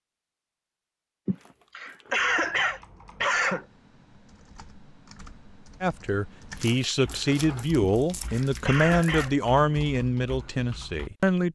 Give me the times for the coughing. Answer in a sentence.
You can hear the coughing from 1.2 to 3.6 s and from 7.8 to 9.3 s.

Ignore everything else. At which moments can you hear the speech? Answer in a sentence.
You can hear the speech from 5.8 to 11.4 s.